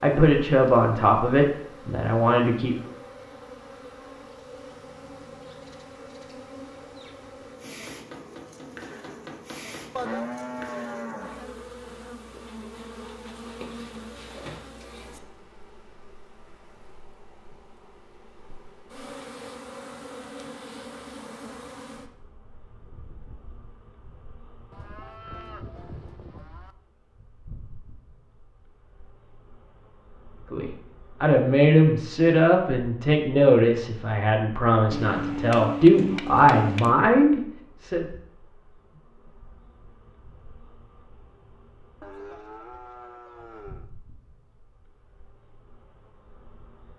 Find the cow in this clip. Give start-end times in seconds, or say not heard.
9.9-11.5, 24.7-26.8, 42.0-43.9.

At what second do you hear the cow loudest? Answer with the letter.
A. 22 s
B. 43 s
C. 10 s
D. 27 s
C.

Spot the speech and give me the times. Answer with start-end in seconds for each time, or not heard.
0.0-2.8, 30.5-38.0.